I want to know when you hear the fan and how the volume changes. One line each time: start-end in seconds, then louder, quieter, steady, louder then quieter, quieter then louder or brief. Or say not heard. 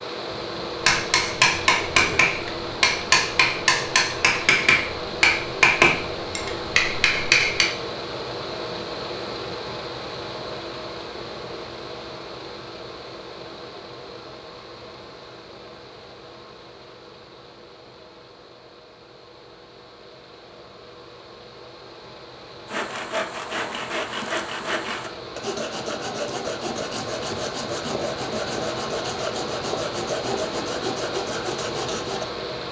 0.0-32.6 quieter then louder.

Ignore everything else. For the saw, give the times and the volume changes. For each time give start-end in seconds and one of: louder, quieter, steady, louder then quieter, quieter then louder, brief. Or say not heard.
22.6-32.2 steady.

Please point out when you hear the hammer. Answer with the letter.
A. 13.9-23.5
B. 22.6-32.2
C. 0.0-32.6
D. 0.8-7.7
D.